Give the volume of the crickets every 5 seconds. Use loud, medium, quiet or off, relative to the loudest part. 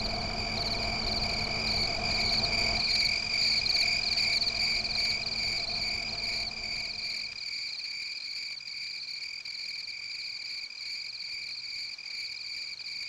loud, medium, medium.